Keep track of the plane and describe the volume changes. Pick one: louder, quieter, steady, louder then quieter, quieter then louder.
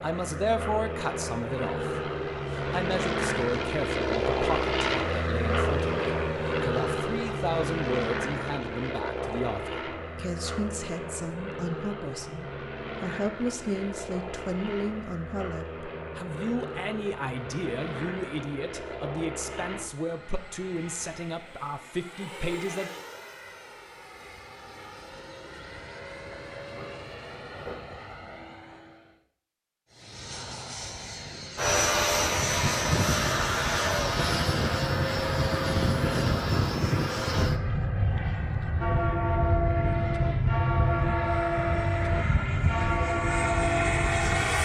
quieter then louder.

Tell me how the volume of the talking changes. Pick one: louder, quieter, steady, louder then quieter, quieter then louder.
steady.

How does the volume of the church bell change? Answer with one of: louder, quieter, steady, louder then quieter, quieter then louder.
steady.